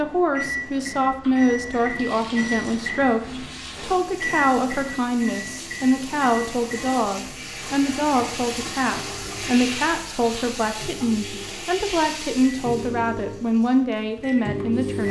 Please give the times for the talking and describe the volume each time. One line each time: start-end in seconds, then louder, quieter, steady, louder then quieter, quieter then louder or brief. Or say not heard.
0.0-15.0 steady.